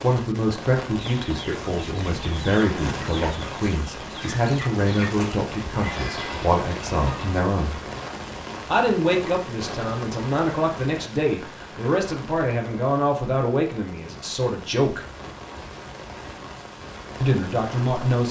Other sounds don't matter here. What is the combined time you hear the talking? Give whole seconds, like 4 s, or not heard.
15 s.